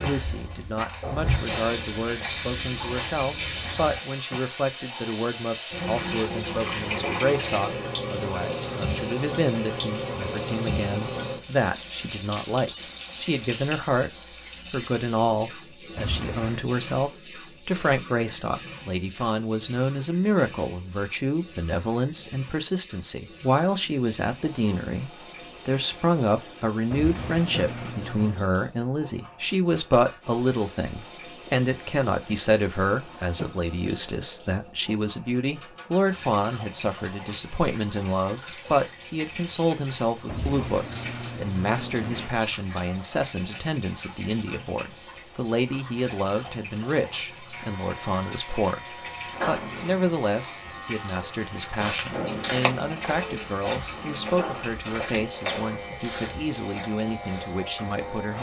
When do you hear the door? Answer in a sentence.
The door can be heard from 15.9 to 16.6 s, from 26.9 to 28.4 s and from 40.2 to 42.3 s.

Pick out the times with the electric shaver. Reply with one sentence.
You can hear the electric shaver from 47.5 to 58.3 s.